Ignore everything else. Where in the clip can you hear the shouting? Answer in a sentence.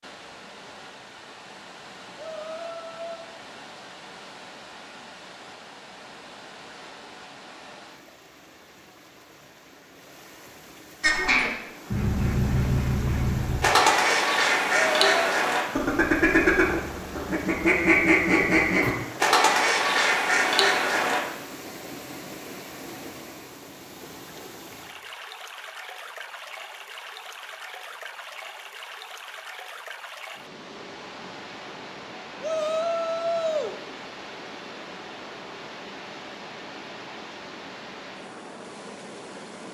The shouting can be heard from 2.1 to 3.2 s, from 14.9 to 15.3 s and from 32.4 to 33.8 s.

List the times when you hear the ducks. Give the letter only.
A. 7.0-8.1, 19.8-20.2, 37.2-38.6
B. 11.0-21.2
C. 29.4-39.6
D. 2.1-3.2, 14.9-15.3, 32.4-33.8
B.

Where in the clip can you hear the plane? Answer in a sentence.
You can't hear the plane here.